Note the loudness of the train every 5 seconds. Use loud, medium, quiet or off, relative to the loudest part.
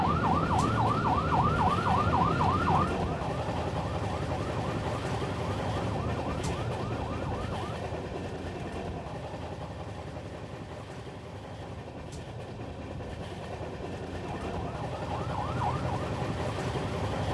loud, loud, medium, loud.